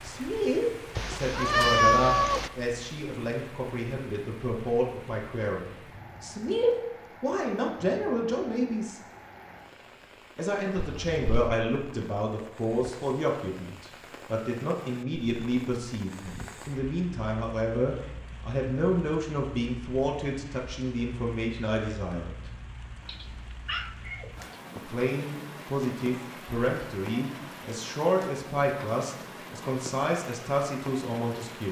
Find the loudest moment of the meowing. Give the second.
2 s.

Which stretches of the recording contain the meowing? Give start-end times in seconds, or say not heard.
0.9-2.5, 10.9-11.6, 23.1-24.6.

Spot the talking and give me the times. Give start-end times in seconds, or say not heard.
0.0-9.0, 10.3-22.4, 24.8-31.6.